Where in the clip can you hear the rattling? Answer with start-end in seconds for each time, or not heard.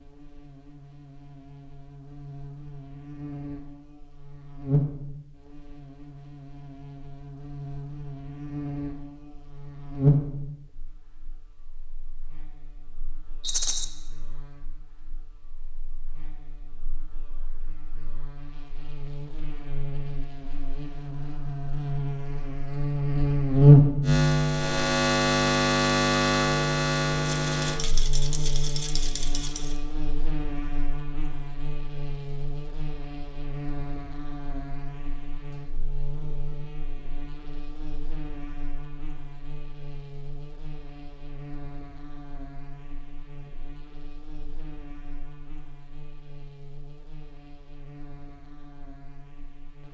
13.4-13.8, 27.2-29.8.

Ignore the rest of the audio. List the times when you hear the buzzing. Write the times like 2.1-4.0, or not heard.
0.0-49.8.